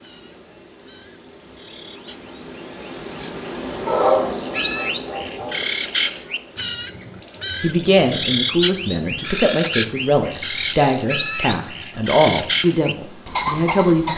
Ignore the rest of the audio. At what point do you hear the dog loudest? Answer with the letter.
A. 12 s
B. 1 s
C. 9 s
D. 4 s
D.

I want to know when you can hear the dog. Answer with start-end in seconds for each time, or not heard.
3.9-6.1.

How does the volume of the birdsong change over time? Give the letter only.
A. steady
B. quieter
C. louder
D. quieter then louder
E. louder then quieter
C.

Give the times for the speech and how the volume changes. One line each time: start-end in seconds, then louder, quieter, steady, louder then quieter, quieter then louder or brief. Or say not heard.
7.6-14.1 steady.